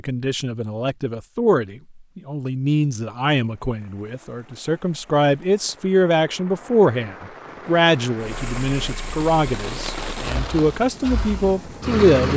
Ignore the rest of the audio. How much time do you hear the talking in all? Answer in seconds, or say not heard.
12 s.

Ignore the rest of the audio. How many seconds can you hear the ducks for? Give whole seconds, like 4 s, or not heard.
not heard.